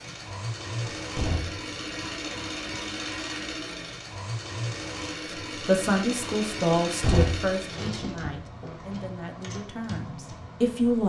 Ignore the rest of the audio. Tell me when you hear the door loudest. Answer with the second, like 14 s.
7 s.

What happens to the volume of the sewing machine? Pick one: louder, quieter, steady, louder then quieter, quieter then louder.
quieter.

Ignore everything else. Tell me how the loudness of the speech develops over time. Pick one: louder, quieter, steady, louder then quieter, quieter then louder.
quieter.